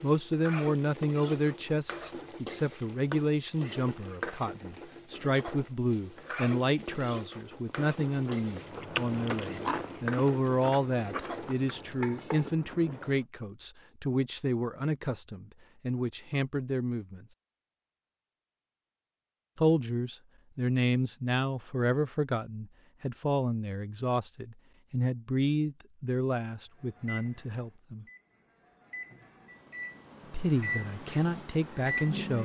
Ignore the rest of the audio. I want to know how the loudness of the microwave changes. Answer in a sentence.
The loudness of the microwave goes up.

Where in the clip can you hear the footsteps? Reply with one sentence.
You can't hear the footsteps here.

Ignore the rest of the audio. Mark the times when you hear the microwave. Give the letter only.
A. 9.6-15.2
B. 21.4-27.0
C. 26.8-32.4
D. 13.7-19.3
C.